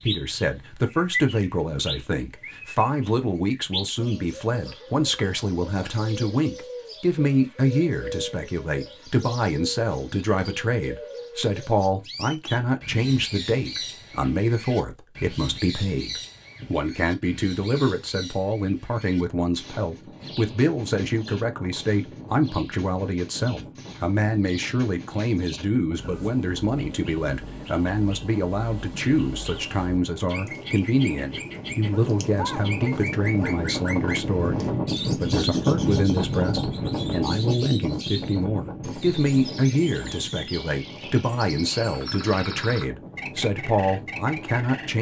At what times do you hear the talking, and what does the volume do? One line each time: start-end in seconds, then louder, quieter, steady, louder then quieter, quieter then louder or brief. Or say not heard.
0.0-44.9 steady.